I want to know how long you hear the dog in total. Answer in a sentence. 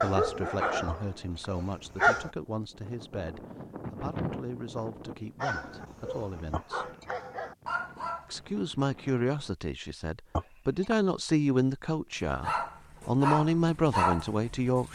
The dog can be heard for 8 seconds in total.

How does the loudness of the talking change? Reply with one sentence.
The volume of the talking goes up.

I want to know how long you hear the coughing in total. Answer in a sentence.
You can hear the coughing for 2 seconds altogether.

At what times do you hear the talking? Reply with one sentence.
The talking can be heard from 0.0 to 6.9 s and from 8.3 to 14.9 s.